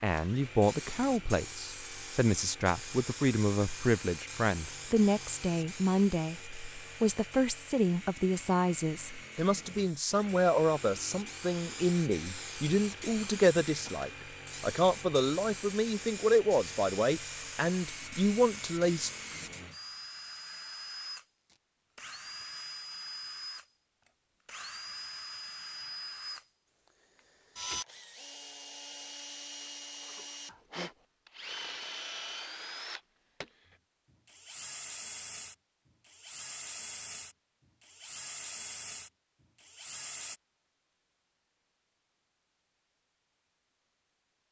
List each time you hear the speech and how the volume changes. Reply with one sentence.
You can hear the speech from 0.0 to 19.1 s, at a steady volume.